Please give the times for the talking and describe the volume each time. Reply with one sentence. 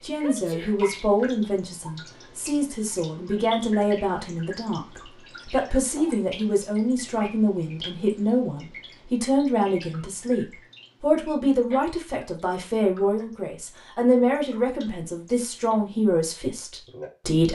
The talking can be heard from 0.0 to 17.4 s, at a steady volume.